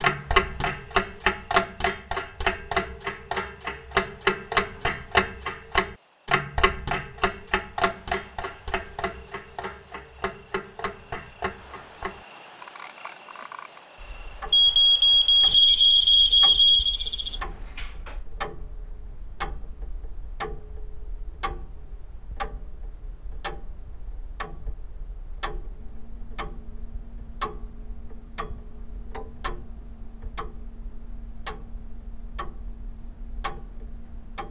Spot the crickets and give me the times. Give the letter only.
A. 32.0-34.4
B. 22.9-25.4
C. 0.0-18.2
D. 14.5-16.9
C.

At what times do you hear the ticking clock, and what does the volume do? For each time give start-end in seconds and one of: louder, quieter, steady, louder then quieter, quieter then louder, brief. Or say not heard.
0.0-34.4 quieter.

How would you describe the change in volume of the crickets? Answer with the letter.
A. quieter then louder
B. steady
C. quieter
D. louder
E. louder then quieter
D.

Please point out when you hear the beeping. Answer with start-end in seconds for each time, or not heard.
14.5-16.9.